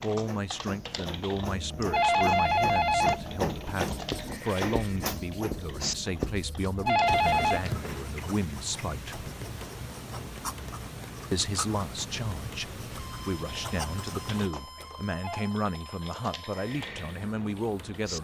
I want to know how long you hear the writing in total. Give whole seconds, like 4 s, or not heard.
11 s.